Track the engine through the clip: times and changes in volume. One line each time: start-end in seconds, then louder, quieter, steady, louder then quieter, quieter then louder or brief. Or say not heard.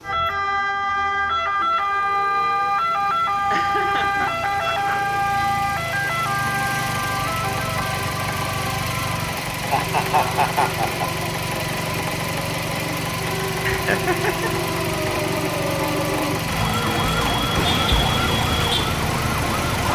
0.0-19.9 louder.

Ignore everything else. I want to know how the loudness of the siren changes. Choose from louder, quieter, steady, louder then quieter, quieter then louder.
quieter then louder.